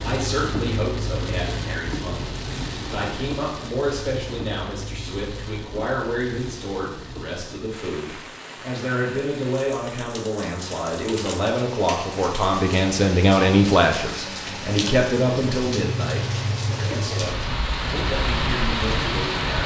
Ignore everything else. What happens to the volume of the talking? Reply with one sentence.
The loudness of the talking goes up, then down.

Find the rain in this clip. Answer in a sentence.
You can hear the rain from 0.0 to 19.6 s.